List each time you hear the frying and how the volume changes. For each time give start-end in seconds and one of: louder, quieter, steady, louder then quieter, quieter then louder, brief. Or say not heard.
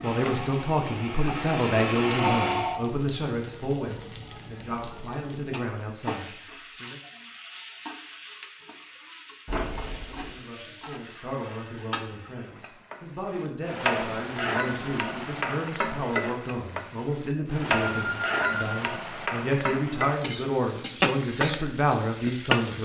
0.0-22.8 louder.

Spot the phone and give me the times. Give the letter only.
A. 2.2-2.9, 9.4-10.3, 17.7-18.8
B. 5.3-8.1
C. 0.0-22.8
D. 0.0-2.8
A.